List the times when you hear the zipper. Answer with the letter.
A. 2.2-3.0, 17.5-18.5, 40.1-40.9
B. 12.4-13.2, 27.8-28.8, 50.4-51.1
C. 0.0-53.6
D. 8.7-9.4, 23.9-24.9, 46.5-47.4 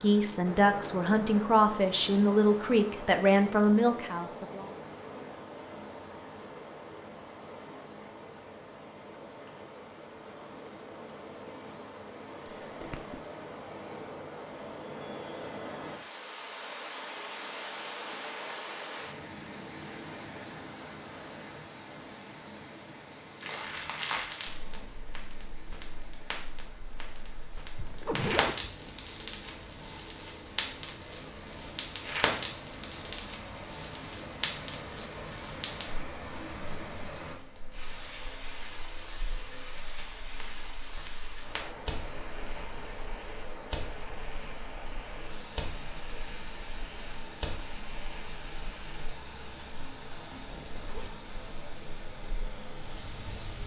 B.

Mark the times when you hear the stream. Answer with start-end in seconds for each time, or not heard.
0.0-53.6.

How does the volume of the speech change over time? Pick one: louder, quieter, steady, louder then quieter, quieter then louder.
steady.